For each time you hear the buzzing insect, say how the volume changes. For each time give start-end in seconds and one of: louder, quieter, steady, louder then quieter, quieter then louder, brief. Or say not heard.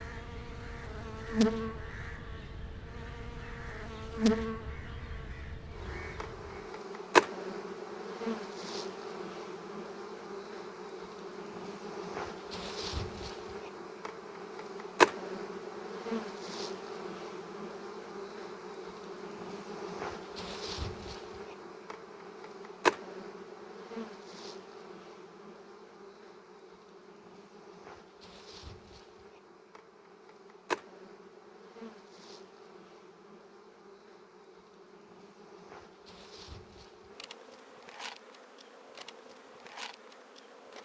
0.0-40.7 quieter.